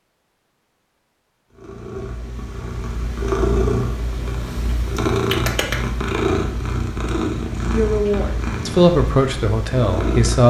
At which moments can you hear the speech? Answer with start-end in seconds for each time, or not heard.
7.7-10.4.